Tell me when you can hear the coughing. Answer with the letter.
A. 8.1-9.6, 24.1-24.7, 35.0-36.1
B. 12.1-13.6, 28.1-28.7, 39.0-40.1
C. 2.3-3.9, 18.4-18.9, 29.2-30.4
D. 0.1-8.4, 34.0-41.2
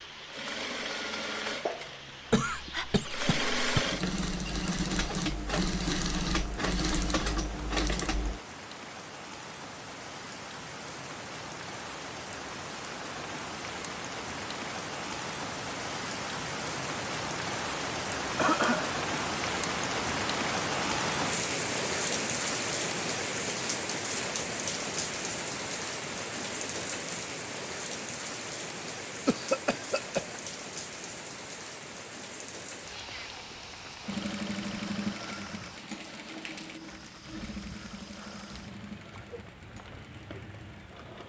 C.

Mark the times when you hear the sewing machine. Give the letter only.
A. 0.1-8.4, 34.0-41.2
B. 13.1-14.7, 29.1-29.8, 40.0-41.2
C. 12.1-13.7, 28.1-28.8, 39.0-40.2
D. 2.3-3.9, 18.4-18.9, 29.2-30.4
A.